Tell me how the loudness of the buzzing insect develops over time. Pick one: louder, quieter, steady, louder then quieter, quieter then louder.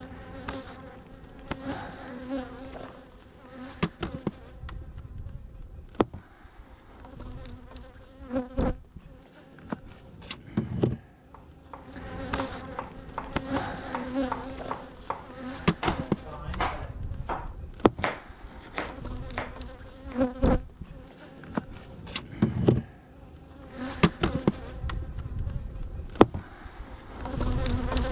louder.